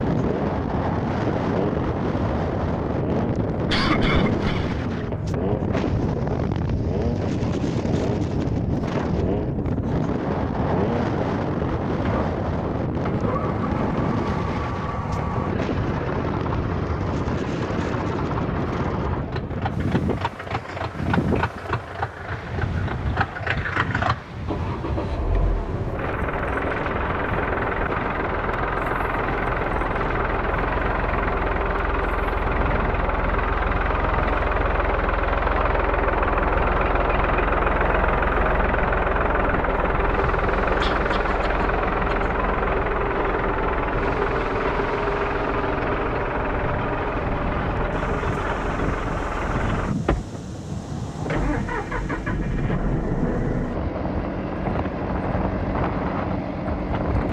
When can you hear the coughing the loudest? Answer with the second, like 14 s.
4 s.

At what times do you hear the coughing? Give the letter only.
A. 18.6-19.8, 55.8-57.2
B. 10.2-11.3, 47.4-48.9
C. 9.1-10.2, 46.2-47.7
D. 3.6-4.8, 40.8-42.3
D.